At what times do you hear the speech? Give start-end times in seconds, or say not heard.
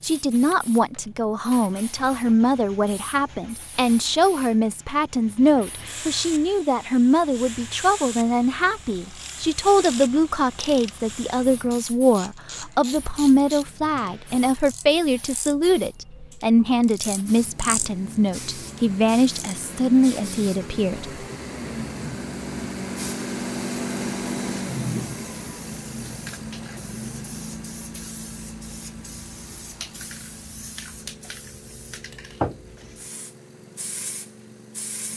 0.0-21.1.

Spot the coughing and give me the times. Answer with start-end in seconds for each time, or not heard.
not heard.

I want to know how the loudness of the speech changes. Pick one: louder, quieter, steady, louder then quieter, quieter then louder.
steady.